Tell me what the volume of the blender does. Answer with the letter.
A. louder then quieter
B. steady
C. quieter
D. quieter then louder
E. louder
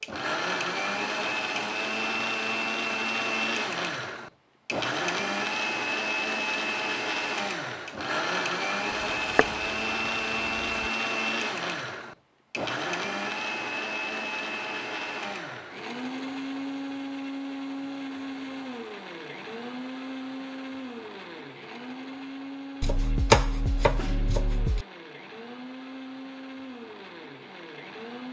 C.